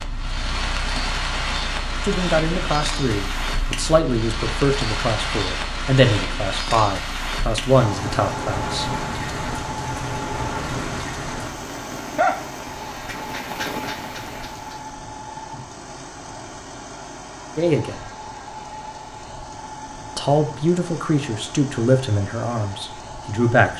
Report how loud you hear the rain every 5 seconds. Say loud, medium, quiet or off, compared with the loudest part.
loud, loud, loud, off, off.